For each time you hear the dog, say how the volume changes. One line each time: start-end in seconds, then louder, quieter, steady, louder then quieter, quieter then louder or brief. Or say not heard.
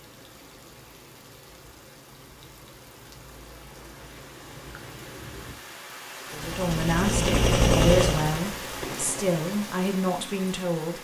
not heard.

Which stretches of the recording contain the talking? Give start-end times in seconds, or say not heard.
6.3-10.9.